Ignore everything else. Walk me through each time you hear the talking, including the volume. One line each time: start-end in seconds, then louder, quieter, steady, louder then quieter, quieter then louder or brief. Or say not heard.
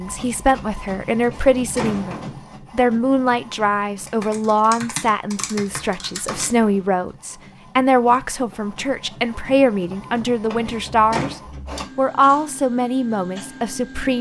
0.0-11.3 steady
11.9-14.1 brief.